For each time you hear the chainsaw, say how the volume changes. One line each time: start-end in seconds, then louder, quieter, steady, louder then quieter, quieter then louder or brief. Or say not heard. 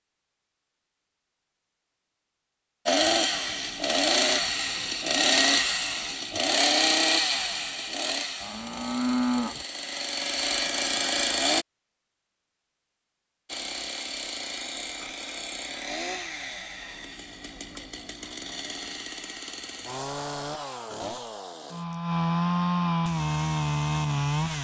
2.9-11.7 quieter then louder
13.4-24.5 louder.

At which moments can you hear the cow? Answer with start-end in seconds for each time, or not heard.
8.4-9.7.